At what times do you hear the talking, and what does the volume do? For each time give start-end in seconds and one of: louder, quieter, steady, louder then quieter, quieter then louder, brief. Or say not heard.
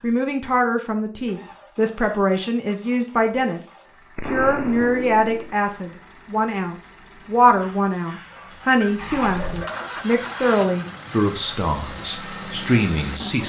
0.0-13.4 steady.